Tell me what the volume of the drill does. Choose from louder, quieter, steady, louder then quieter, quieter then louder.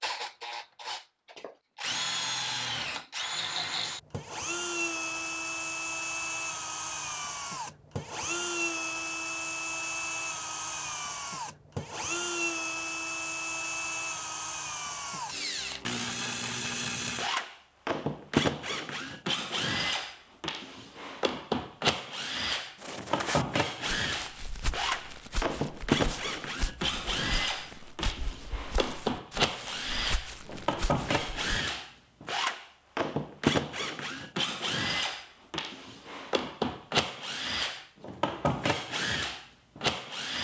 steady.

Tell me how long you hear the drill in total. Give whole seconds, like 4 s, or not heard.
40 s.